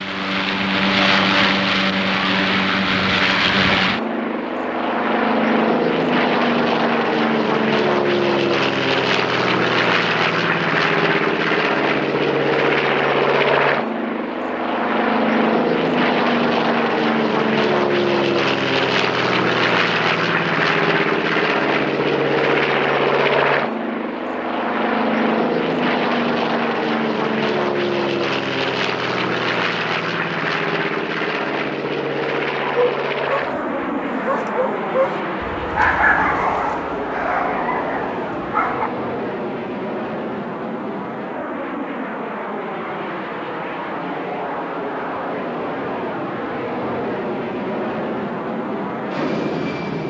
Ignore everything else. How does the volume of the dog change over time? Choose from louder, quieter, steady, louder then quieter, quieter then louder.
louder then quieter.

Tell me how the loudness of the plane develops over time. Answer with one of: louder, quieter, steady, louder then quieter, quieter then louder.
quieter.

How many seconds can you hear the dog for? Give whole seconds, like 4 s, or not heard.
6 s.